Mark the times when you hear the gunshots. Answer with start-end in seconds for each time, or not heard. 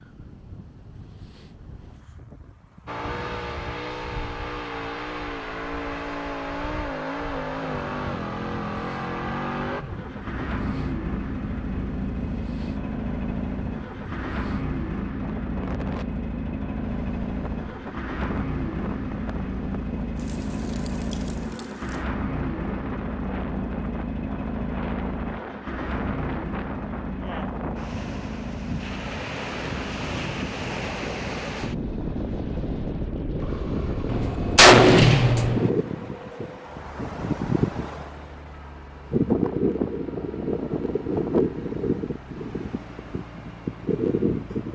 34.0-35.7.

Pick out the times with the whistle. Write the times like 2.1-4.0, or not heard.
not heard.